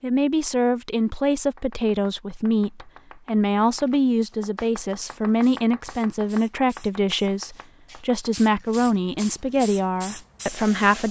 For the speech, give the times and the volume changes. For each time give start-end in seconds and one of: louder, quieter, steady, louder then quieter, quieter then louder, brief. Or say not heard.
0.0-11.0 steady.